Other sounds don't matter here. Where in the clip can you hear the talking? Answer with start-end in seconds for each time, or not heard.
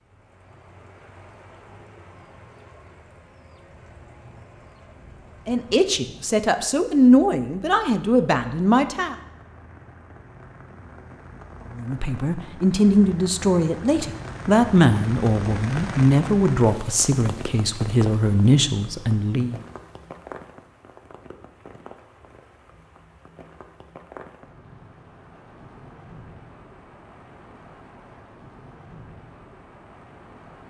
5.5-9.2, 11.8-19.6.